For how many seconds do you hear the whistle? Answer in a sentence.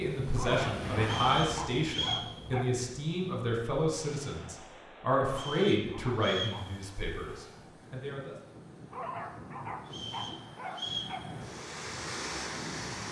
The whistle can be heard for 4 seconds in total.